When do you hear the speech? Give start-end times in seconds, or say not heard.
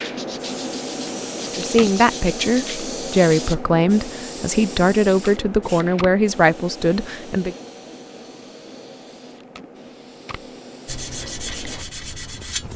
1.5-7.5.